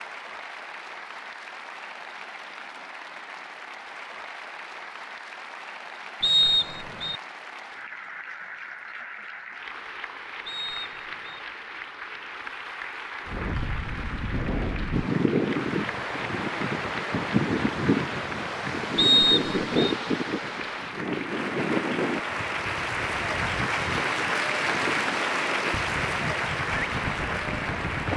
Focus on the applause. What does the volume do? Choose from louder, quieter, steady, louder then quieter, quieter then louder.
louder.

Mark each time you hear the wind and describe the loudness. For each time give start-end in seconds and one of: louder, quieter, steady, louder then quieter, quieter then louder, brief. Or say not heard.
13.2-28.1 quieter.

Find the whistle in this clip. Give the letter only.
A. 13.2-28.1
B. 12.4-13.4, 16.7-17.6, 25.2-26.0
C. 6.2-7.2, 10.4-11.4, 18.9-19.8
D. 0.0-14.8
C.